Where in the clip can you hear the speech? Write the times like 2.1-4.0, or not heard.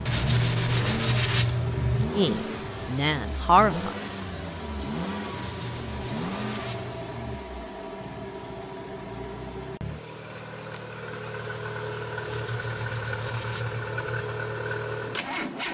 2.1-4.0.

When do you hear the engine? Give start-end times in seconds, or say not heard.
0.0-15.6.